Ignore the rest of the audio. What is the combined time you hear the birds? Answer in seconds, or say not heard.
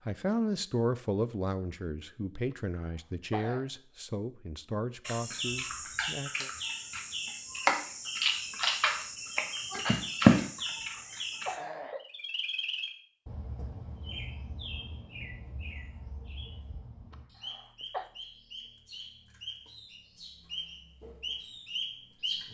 17 s.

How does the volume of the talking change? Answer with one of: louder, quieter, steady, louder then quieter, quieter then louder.
quieter.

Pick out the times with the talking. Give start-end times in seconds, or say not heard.
0.1-6.5.